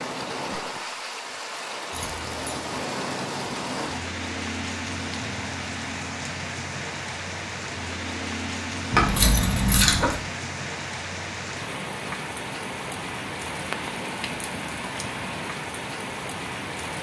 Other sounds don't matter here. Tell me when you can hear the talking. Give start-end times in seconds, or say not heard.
not heard.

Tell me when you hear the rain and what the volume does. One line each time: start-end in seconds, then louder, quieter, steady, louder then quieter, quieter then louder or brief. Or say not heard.
0.0-16.9 steady.